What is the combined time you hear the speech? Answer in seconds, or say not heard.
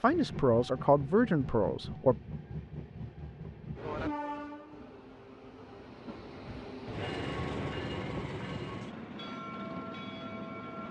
2 s.